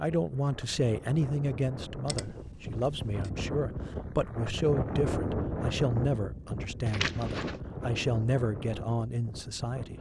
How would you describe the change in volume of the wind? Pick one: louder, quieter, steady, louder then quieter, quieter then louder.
louder then quieter.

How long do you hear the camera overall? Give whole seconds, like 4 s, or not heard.
2 s.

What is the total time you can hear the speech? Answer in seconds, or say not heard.
10 s.